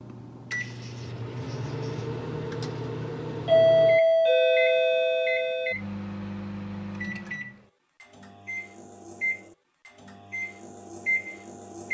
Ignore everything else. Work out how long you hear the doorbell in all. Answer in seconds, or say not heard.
2 s.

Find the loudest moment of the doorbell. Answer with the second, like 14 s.
4 s.